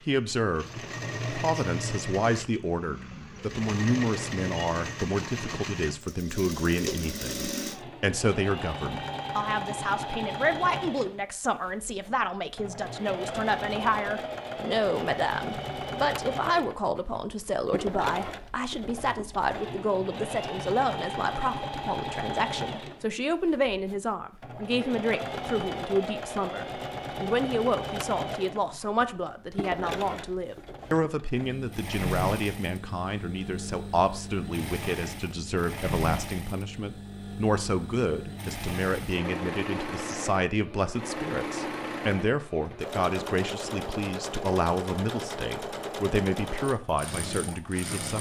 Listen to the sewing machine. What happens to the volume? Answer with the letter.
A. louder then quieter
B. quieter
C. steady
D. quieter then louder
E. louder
C.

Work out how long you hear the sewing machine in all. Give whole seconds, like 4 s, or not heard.
48 s.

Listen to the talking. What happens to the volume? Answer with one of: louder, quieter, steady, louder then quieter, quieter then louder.
steady.